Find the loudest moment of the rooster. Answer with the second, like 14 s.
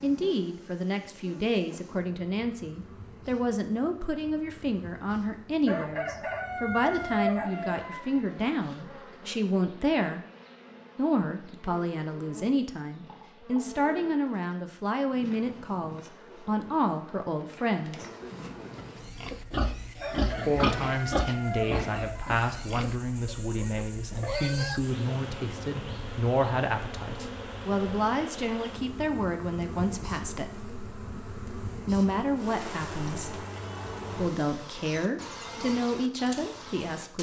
7 s.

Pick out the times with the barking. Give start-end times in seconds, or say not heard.
not heard.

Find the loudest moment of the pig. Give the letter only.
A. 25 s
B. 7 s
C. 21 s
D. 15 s
C.